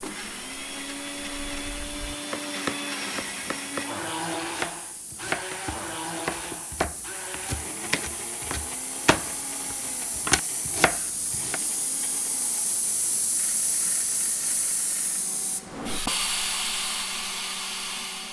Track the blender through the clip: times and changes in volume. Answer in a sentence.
The blender can be heard from 0.0 to 18.2 s, getting quieter.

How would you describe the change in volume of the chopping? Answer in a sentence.
The volume of the chopping goes up.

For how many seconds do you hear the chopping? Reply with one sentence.
The chopping can be heard for 9 seconds in total.